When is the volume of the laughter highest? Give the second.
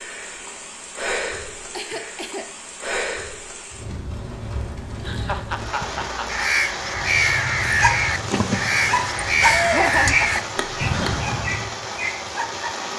10 s.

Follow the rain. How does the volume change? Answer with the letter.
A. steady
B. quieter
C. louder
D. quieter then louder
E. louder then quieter
A.